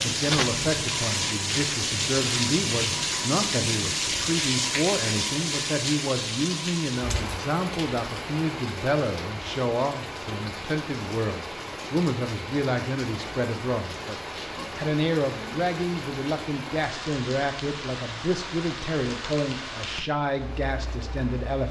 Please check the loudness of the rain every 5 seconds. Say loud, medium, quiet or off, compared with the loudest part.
loud, medium, medium, medium, quiet.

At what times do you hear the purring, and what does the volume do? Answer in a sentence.
The purring can't be heard in this clip.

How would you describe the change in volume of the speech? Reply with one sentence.
The volume of the speech stays about the same.